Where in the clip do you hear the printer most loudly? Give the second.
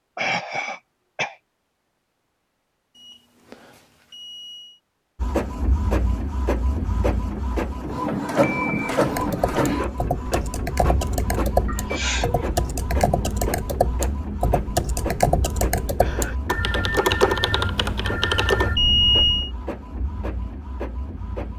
9 s.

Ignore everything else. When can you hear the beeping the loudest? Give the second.
19 s.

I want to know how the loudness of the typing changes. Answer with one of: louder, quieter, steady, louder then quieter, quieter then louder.
louder.